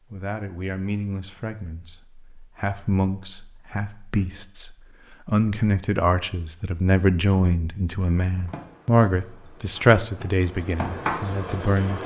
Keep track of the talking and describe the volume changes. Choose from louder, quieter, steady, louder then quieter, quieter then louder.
louder.